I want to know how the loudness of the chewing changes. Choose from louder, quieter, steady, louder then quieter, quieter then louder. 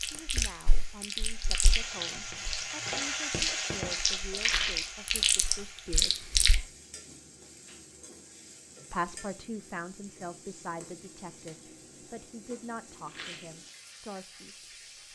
louder.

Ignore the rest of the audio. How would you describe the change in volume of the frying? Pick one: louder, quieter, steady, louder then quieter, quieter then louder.
quieter.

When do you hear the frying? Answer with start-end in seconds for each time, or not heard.
0.0-15.1.